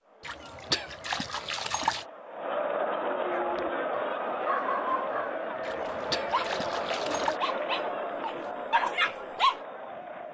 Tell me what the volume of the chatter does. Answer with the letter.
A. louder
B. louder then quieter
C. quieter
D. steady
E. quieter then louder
B.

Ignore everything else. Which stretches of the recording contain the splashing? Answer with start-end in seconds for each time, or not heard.
0.2-2.0, 5.6-7.4.